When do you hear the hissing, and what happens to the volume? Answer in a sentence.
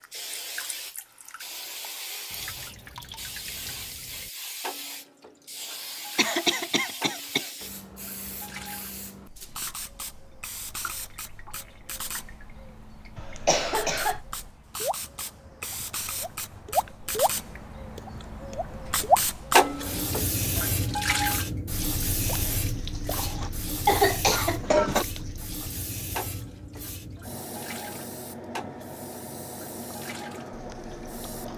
You can hear the hissing from 0.0 to 31.5 s, getting louder then quieter.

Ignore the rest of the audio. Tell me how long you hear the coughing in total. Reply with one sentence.
The coughing can be heard for 4 seconds in total.